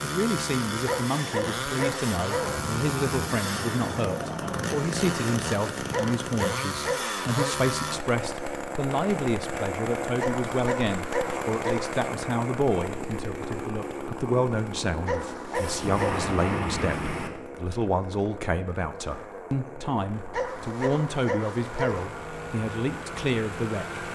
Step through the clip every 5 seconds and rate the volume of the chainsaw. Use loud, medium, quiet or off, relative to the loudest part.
loud, loud, loud, medium, medium.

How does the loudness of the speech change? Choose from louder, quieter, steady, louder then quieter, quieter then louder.
steady.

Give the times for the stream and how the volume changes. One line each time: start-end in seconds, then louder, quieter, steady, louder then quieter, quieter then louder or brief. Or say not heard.
not heard.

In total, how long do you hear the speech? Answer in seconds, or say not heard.
24 s.